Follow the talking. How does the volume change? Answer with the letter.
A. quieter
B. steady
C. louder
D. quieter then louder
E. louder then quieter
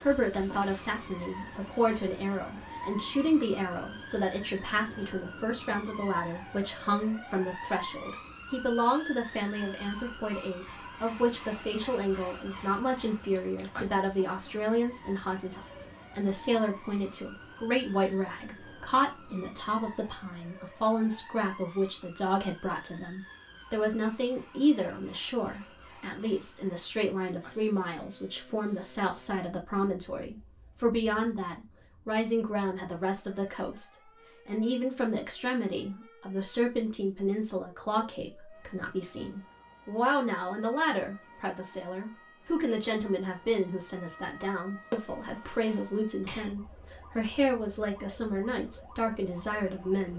B.